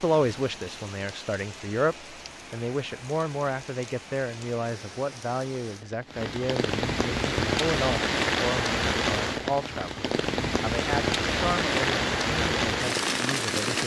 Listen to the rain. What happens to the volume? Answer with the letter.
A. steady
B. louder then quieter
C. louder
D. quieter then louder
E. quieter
C.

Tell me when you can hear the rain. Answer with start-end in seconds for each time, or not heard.
0.0-13.8.